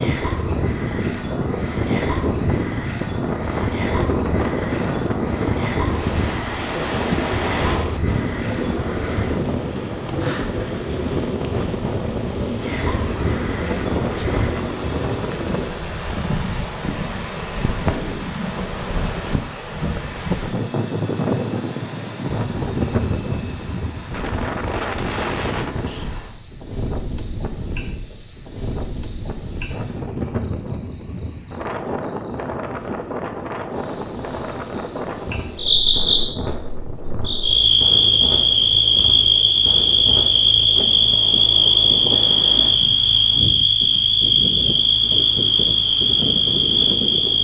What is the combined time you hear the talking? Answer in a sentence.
You can't hear the talking here.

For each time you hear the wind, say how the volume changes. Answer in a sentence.
You can hear the wind from 0.0 to 47.3 s, getting quieter.